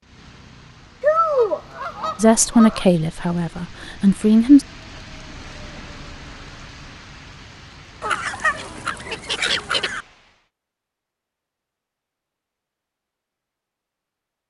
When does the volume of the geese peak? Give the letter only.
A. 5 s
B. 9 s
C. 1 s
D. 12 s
C.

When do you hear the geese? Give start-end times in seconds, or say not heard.
1.0-2.9, 8.0-10.1.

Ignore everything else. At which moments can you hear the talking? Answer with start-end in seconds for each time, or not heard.
2.2-4.7.